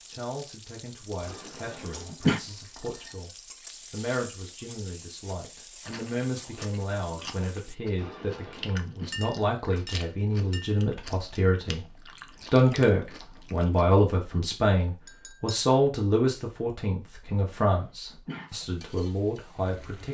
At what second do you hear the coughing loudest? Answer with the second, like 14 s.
2 s.